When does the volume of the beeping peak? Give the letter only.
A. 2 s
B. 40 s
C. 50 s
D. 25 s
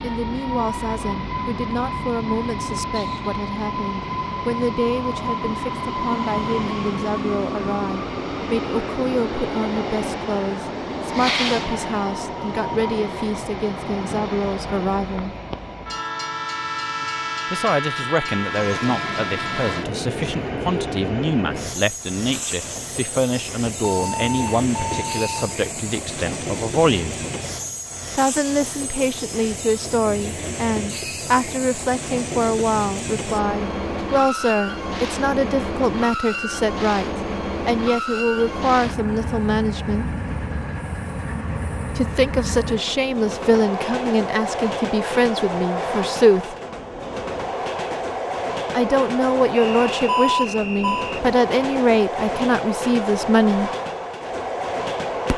C.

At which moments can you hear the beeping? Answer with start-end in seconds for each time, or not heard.
23.8-25.6, 50.0-51.1.